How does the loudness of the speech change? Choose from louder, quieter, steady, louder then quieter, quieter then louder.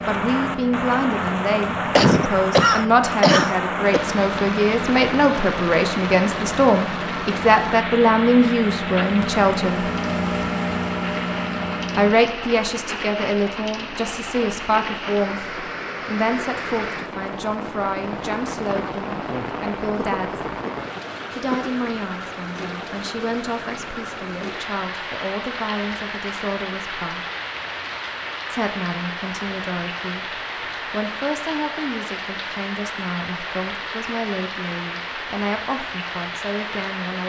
quieter.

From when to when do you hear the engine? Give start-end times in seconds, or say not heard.
0.0-12.2.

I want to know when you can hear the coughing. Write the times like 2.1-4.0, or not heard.
1.9-4.0, 19.9-21.7.